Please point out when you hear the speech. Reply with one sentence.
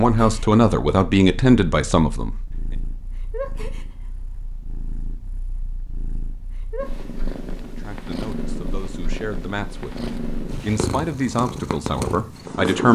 You can hear the speech from 0.0 to 2.4 s and from 7.7 to 12.9 s.